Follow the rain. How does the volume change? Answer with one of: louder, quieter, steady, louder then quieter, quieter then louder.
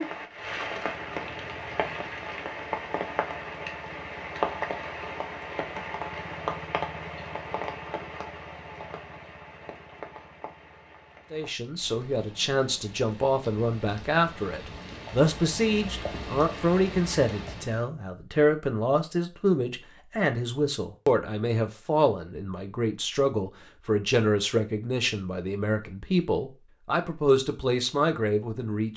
quieter then louder.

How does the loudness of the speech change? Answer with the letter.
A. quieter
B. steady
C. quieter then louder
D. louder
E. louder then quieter
B.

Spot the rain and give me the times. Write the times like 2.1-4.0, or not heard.
0.0-17.9.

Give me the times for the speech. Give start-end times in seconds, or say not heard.
11.3-28.9.